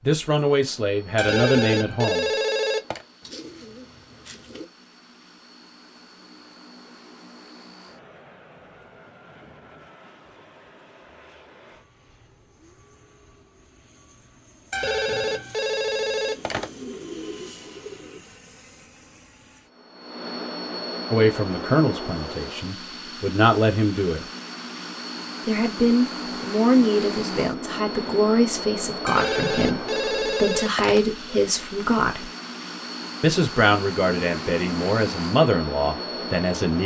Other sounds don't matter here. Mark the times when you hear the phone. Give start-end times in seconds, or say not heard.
1.1-3.0, 14.7-16.7, 29.1-31.0.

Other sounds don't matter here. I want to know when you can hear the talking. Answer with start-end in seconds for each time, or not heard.
0.1-2.3, 21.1-24.2, 25.4-32.3, 33.2-36.8.